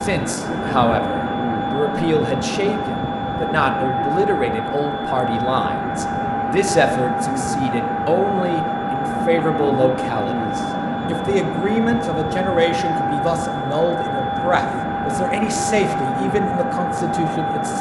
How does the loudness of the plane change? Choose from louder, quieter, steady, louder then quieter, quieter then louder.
steady.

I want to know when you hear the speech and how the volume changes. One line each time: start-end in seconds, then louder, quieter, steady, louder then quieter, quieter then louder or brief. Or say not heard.
0.0-17.7 steady.